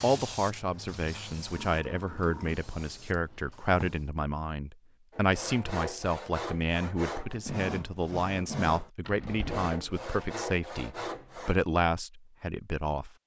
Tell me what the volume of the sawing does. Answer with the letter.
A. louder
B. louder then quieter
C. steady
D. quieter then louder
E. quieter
C.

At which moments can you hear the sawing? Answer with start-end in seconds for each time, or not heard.
5.1-11.7.